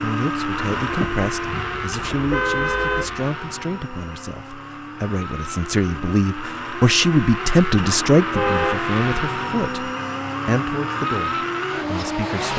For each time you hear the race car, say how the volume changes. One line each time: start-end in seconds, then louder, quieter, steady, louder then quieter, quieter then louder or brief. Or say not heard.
0.0-12.5 quieter then louder.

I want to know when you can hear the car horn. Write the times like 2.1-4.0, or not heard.
0.8-3.2, 8.2-8.8.